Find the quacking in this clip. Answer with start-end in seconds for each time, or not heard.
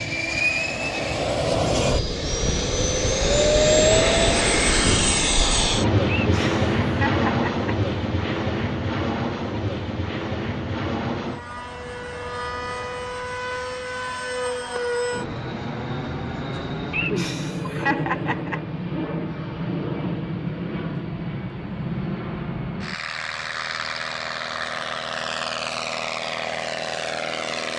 not heard.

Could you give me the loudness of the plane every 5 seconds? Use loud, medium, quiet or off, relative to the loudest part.
loud, loud, medium, medium, medium, medium.